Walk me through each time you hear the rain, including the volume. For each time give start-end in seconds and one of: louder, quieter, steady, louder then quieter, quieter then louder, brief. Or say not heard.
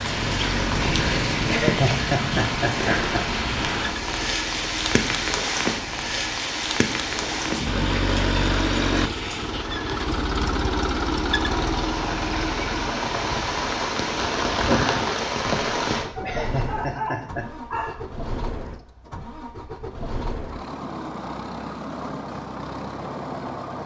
0.0-16.1 quieter then louder.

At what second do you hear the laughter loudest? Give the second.
2 s.